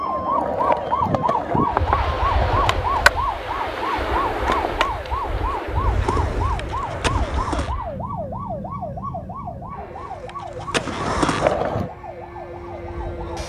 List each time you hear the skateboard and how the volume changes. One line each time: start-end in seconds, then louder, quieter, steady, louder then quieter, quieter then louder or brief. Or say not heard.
0.0-7.8 quieter
9.9-11.9 brief.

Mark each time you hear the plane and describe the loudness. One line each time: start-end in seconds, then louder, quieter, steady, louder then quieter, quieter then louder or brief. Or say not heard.
1.6-13.4 quieter.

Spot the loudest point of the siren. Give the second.
1 s.